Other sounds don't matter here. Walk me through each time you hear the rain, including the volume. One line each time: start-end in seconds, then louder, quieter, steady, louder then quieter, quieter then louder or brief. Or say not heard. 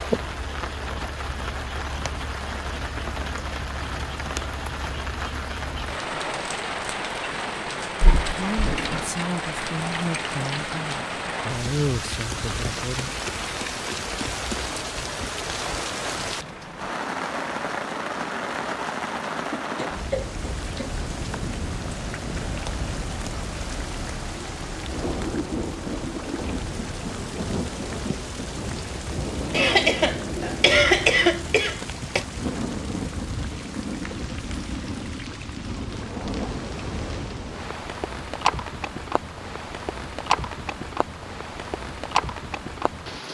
0.0-43.2 steady.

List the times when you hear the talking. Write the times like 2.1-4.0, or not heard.
8.2-13.1.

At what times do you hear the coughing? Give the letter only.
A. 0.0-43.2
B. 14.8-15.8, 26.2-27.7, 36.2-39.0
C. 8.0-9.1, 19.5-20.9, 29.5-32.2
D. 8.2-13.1
C.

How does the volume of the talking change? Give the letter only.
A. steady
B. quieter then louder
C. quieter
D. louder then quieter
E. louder
D.